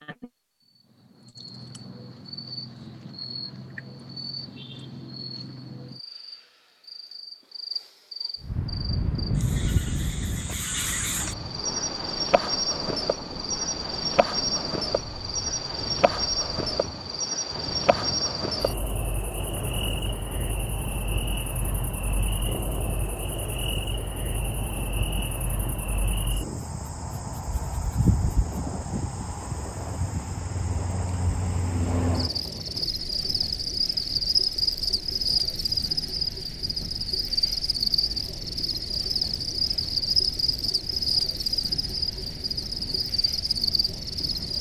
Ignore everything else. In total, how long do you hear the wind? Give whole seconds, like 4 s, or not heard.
36 s.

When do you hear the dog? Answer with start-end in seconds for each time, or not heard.
not heard.